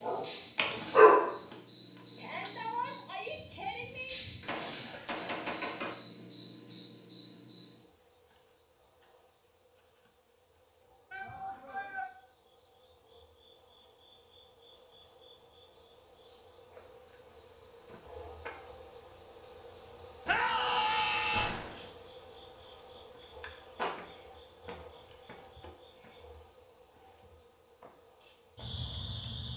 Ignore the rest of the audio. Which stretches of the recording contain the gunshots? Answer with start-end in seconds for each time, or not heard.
1.9-2.5, 3.3-6.0, 21.3-21.9.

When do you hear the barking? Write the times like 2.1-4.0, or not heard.
0.0-1.3.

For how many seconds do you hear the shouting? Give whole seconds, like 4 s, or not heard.
4 s.